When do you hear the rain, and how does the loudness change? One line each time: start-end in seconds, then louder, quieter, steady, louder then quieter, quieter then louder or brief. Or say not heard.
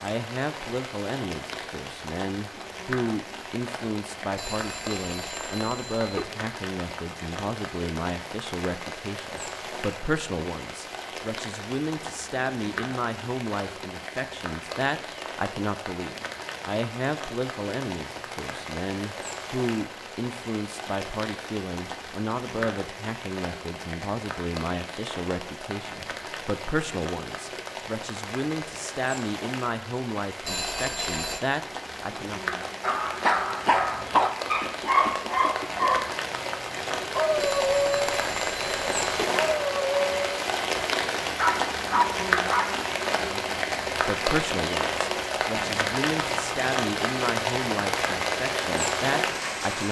0.0-49.8 louder.